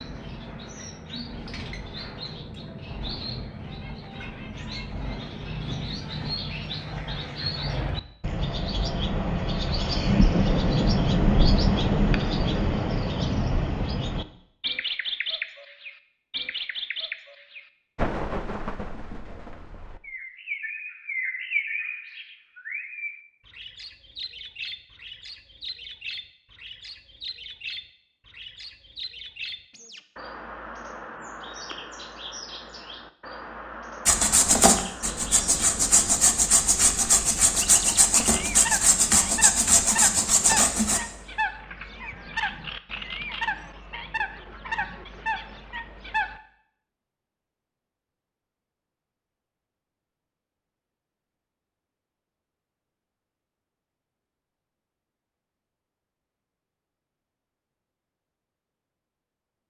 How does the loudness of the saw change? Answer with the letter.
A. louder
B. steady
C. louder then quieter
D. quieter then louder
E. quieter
B.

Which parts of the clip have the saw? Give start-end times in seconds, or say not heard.
34.0-41.0.